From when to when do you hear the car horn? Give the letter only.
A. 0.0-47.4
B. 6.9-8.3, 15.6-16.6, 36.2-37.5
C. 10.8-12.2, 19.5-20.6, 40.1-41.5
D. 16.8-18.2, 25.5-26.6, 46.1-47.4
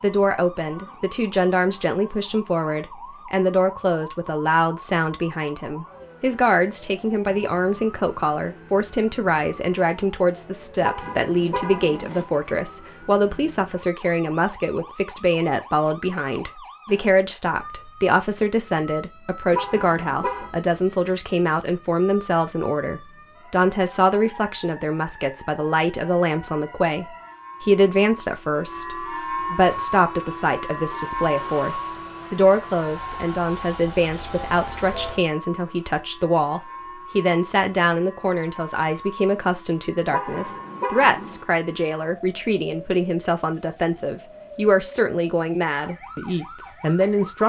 C.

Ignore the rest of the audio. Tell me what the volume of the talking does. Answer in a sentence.
The volume of the talking stays about the same.